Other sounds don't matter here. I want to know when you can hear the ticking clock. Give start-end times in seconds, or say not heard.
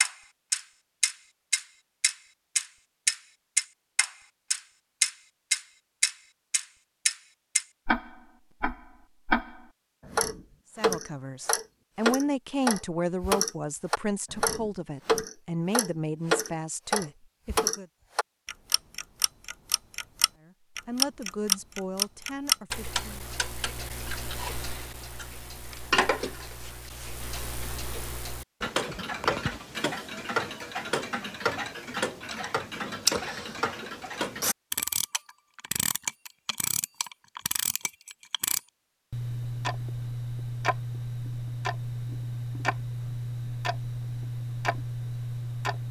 0.0-45.8.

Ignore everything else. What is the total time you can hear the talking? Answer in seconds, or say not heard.
10 s.